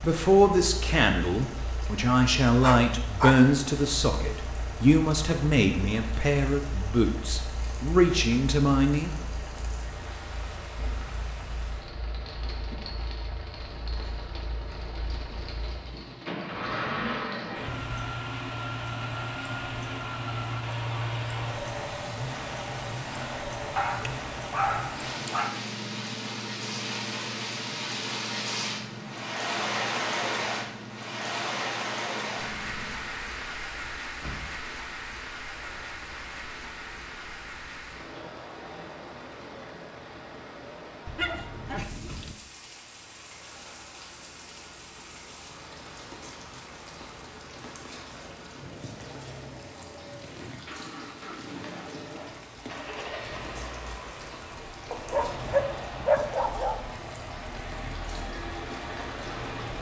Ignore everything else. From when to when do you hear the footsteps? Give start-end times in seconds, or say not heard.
not heard.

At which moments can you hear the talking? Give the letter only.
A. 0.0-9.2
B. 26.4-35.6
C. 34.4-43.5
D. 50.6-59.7
A.